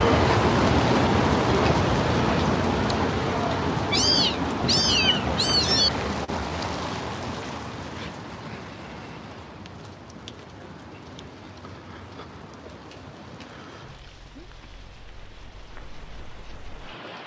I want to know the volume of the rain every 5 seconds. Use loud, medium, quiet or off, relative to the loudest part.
loud, medium, quiet, quiet.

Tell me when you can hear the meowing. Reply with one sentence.
You can hear the meowing from 3.9 to 5.9 s.